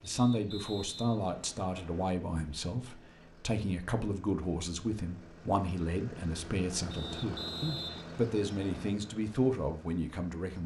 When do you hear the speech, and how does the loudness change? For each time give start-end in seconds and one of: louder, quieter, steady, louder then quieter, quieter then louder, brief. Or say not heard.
0.0-10.6 steady.